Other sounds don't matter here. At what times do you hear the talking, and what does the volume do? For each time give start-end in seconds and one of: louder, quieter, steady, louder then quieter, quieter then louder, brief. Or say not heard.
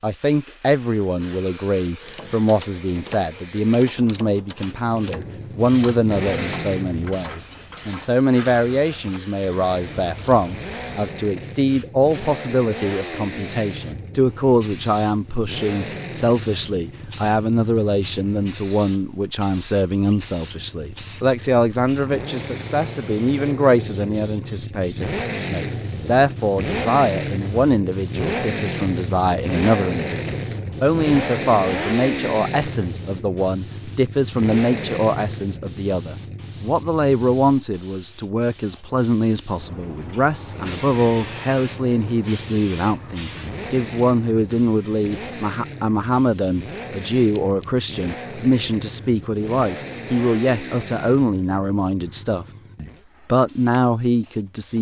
0.0-54.7 steady.